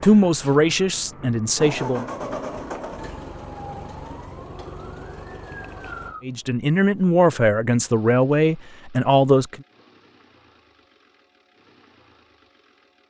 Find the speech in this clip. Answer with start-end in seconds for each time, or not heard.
0.0-2.0, 6.2-9.6.